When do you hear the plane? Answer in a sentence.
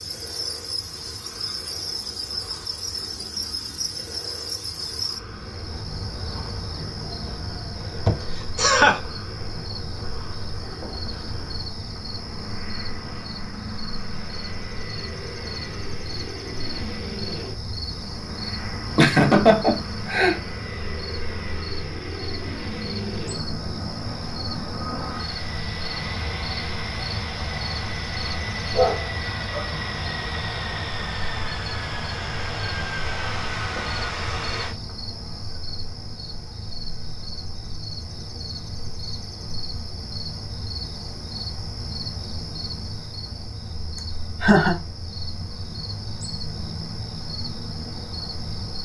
The plane can be heard from 0.0 to 34.8 s.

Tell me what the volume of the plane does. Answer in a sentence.
The volume of the plane goes up.